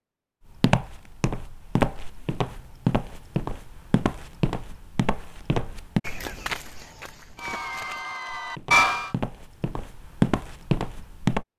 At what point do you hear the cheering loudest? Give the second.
9 s.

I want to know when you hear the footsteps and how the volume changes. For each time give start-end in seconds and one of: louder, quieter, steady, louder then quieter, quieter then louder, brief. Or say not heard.
0.6-11.4 quieter then louder.